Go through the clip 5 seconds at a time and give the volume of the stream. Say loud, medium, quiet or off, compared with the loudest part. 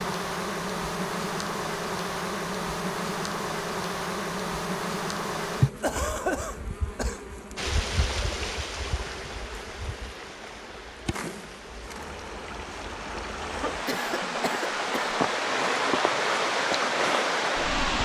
off, medium, medium, loud.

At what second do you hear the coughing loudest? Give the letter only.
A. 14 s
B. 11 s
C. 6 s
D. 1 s
C.